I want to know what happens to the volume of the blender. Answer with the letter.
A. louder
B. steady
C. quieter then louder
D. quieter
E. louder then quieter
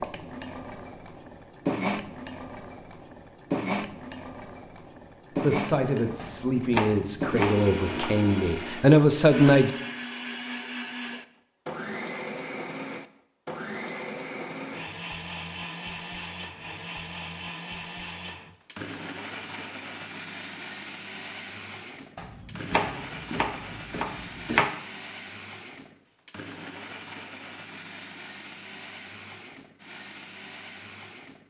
D.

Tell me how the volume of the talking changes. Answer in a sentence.
The volume of the talking goes up.